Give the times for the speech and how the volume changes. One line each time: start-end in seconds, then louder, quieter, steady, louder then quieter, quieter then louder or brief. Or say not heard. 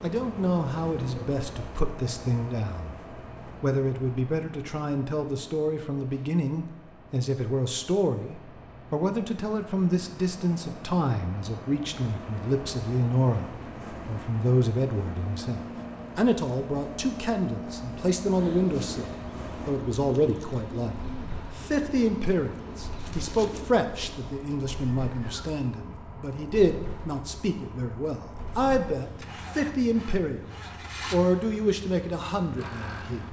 0.0-3.0 brief
3.6-33.2 steady.